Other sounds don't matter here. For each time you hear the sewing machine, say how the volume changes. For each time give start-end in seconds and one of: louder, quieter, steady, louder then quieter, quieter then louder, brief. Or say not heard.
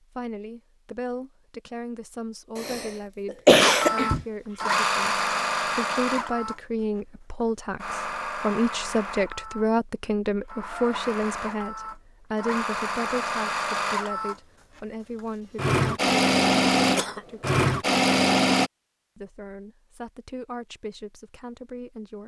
3.6-6.6 brief
7.8-18.7 louder.